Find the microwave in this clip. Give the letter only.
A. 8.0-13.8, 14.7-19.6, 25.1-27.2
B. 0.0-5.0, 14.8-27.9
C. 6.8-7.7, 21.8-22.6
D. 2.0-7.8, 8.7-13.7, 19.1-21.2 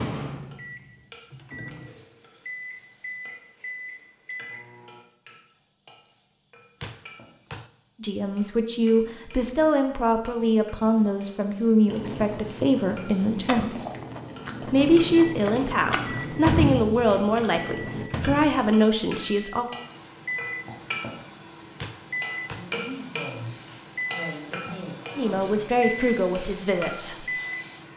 B.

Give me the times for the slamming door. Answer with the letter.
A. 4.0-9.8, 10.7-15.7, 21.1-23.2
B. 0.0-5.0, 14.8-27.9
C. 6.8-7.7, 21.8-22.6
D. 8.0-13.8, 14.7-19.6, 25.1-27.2
C.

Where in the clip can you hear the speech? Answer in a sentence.
You can hear the speech from 8.0 to 13.8 s, from 14.7 to 19.6 s and from 25.1 to 27.2 s.